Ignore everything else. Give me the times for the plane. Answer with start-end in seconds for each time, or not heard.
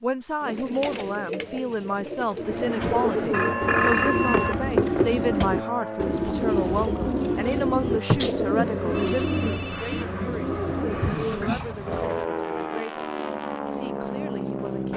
2.3-14.9.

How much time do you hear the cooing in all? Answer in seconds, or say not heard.
12 s.